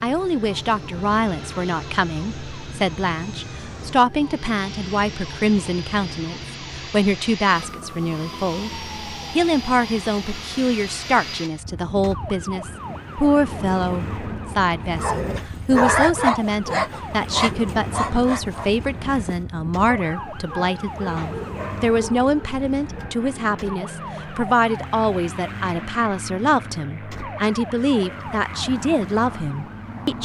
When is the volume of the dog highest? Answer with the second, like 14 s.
16 s.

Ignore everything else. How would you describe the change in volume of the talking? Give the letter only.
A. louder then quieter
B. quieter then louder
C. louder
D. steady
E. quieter
D.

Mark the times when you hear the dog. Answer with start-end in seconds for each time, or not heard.
14.9-23.2.